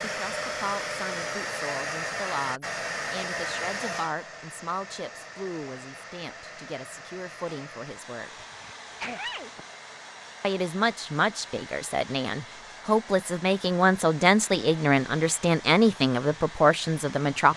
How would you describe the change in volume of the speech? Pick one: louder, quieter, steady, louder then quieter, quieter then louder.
louder.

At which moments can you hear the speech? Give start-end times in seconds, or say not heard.
0.0-8.3, 10.4-17.5.